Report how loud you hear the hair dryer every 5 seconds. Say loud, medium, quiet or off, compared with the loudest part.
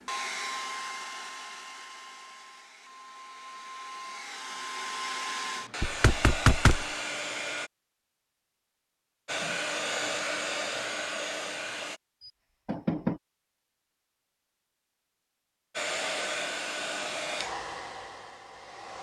medium, loud, loud, loud.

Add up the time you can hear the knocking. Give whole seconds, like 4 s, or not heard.
2 s.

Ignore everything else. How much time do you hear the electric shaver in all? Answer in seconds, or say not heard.
not heard.